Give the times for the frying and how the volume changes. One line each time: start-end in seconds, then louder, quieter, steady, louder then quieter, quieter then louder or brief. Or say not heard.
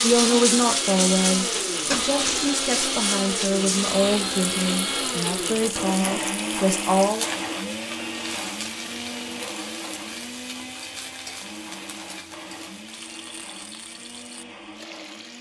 0.0-15.3 quieter.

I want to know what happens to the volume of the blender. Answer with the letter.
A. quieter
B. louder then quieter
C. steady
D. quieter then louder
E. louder
A.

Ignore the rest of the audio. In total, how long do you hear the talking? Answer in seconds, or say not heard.
7 s.